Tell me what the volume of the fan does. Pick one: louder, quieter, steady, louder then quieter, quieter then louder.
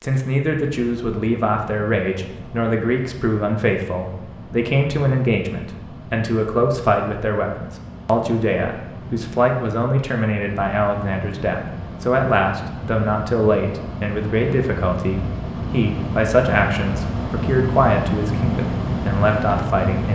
louder.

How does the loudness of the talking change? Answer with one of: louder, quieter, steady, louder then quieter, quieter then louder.
steady.